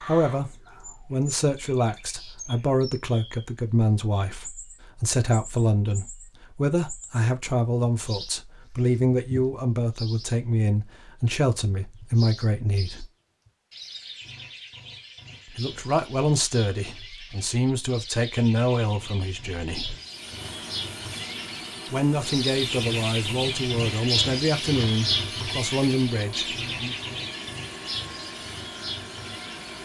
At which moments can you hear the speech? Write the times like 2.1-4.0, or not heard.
0.1-13.1, 15.6-19.9, 21.9-26.9.